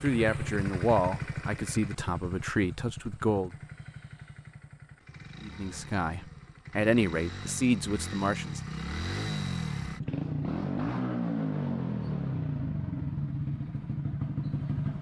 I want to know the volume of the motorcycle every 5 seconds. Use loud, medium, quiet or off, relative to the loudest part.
medium, medium, loud.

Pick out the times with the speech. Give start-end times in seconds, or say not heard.
0.0-3.5, 5.4-8.6.